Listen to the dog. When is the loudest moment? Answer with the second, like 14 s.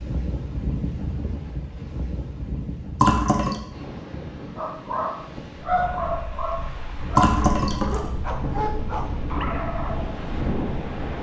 6 s.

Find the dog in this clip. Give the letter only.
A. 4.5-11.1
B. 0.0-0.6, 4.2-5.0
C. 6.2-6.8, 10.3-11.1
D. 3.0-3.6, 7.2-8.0
A.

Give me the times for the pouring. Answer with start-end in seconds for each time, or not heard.
3.0-3.6, 7.2-8.0.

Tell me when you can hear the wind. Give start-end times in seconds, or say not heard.
0.0-11.1.